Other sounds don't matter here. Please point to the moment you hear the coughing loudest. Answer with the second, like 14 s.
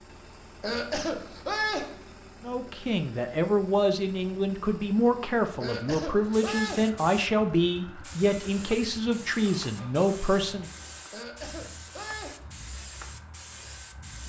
2 s.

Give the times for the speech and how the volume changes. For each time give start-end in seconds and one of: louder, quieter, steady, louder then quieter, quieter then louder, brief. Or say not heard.
2.4-10.7 steady.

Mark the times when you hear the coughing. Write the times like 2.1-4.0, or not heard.
0.6-2.0, 5.6-7.0, 11.1-12.7.